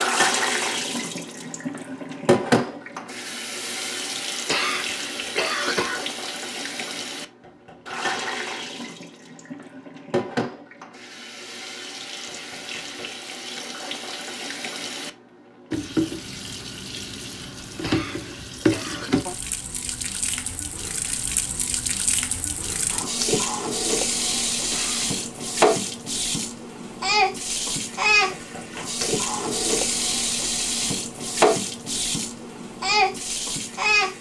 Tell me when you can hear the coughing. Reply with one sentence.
You can hear the coughing from 4.5 to 6.0 s, from 17.8 to 19.2 s and from 24.7 to 25.1 s.